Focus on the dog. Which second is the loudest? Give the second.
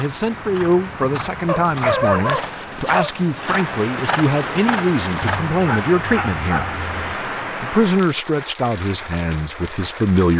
2 s.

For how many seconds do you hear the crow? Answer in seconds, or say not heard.
not heard.